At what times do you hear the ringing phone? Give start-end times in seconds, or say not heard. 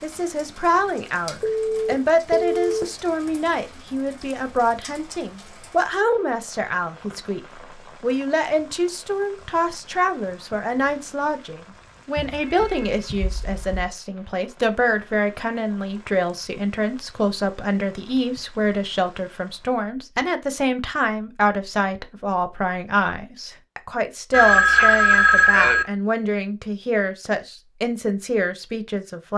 1.4-2.9, 12.2-13.8, 24.3-25.9.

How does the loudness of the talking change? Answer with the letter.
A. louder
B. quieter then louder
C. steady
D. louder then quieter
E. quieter
C.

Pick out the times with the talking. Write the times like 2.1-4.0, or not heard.
0.0-29.3.